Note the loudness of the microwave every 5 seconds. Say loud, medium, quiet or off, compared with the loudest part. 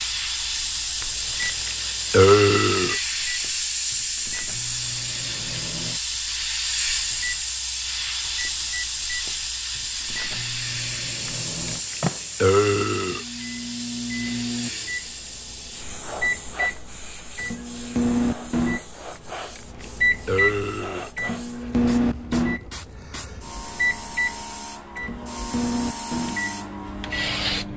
quiet, quiet, medium, loud, loud, medium.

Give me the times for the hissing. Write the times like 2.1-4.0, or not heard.
0.0-27.7.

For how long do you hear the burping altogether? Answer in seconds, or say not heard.
6 s.